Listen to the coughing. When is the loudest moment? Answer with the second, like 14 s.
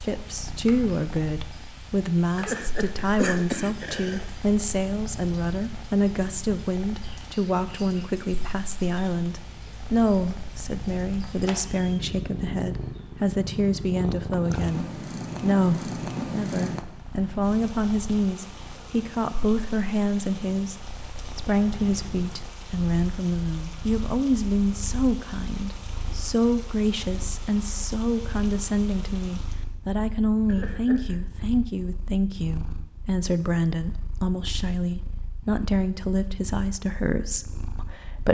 3 s.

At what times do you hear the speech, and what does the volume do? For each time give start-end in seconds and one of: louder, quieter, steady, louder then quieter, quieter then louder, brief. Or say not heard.
0.0-38.2 steady.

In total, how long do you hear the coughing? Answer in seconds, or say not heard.
3 s.